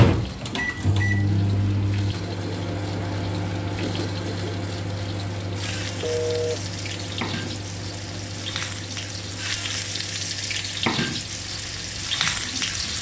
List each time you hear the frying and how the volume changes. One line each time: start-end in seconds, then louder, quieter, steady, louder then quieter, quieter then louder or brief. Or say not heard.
0.0-12.9 louder.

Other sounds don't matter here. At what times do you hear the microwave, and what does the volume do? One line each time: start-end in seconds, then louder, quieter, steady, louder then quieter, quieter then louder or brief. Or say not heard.
0.0-12.9 quieter.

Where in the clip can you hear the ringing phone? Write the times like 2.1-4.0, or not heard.
6.0-6.6.